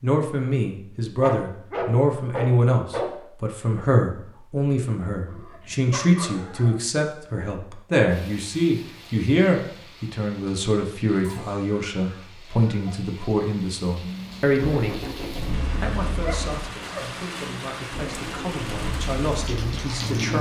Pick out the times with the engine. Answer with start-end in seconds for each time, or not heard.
14.0-20.3.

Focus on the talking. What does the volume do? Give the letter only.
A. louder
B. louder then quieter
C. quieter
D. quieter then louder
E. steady
C.